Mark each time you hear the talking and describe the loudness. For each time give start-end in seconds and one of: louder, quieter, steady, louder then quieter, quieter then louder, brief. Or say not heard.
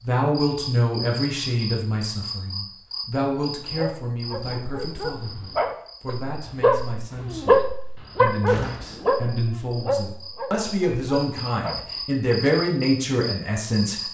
0.1-14.0 quieter then louder.